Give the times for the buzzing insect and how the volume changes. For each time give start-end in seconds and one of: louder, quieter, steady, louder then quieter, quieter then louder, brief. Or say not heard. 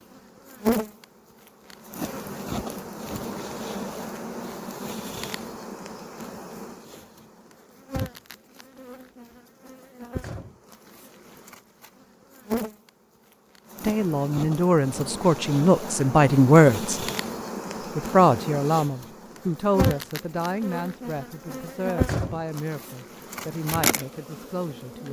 0.1-25.0 quieter then louder.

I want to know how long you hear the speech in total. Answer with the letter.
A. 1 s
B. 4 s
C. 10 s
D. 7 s
C.